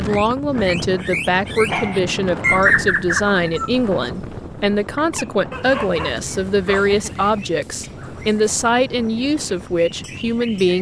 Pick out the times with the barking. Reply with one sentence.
You can hear the barking from 1.6 to 2.1 s and from 5.5 to 7.3 s.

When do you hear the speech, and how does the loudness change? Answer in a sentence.
The speech can be heard from 0.0 to 10.7 s, at a steady volume.